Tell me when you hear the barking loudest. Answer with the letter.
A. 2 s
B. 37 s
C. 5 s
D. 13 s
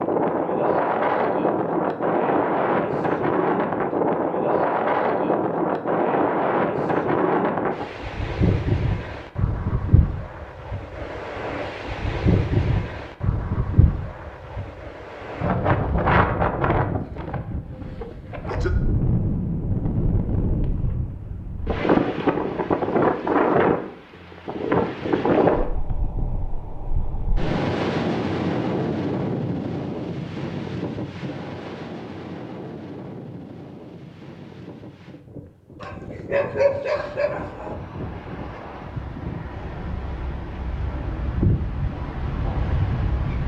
B.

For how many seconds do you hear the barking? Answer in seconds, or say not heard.
2 s.